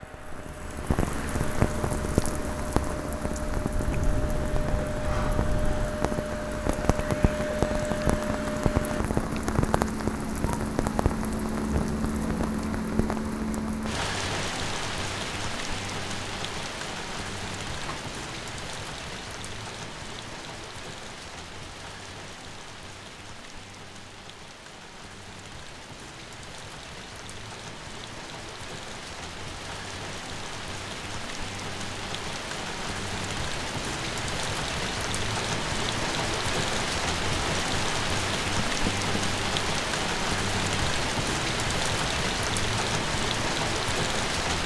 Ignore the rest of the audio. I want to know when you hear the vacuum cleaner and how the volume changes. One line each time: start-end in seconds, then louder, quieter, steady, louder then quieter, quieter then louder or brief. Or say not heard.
0.0-9.1 louder.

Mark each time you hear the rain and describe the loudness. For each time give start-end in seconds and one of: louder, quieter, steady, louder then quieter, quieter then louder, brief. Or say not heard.
0.0-44.6 quieter then louder.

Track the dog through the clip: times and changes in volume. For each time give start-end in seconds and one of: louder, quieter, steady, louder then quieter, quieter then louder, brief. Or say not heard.
not heard.